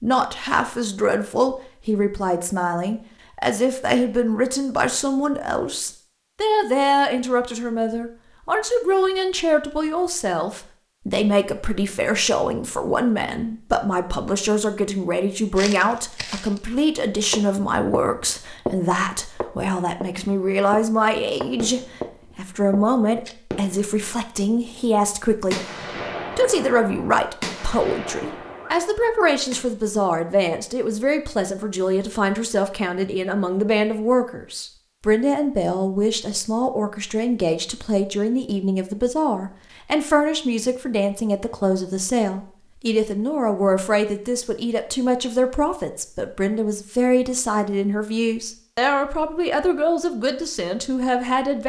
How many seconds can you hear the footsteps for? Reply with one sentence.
You can hear the footsteps for 6 seconds altogether.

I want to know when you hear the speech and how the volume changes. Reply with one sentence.
You can hear the speech from 0.0 to 25.6 s, at a steady volume; and from 26.4 to 51.6 s, at a steady volume.